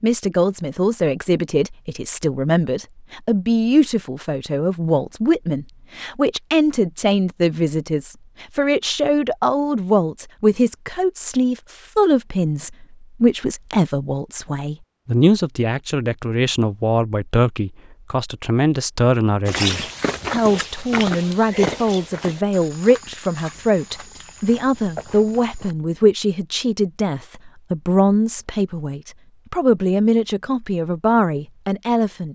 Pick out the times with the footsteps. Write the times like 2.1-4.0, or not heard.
19.4-25.8.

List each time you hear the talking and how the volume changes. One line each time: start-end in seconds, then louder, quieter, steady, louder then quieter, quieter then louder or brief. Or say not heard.
0.0-32.3 steady.